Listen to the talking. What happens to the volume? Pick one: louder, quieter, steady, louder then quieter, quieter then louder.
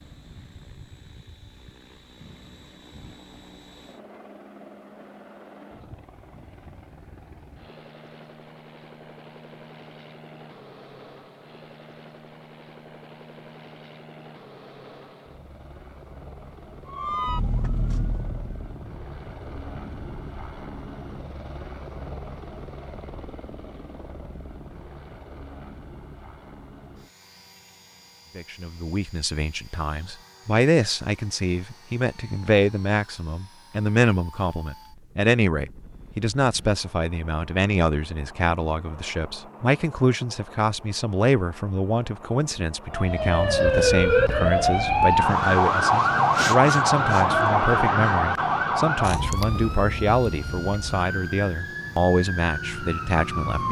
steady.